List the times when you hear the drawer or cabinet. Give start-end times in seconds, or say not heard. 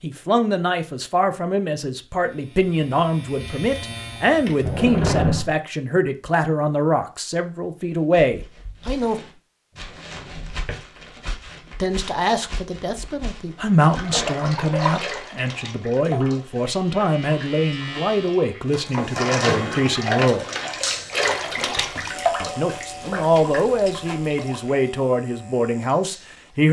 4.6-5.5, 9.8-10.8, 20.9-22.0.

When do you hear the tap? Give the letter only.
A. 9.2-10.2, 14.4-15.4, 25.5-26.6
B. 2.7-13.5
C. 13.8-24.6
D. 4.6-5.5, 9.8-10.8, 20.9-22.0
C.